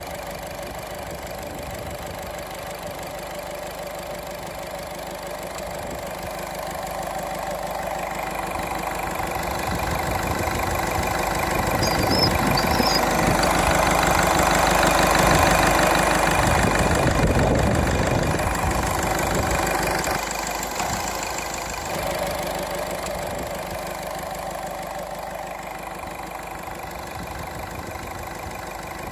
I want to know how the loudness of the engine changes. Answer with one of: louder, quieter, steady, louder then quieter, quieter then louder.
louder then quieter.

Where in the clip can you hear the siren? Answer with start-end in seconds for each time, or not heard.
not heard.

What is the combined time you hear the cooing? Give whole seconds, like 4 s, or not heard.
2 s.